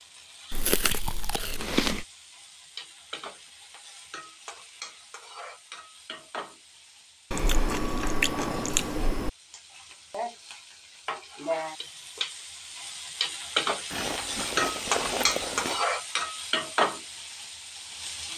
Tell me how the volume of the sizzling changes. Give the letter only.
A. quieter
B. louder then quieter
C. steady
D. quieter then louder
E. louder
E.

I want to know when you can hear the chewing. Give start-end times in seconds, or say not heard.
0.5-2.0, 7.3-9.3, 13.9-15.8.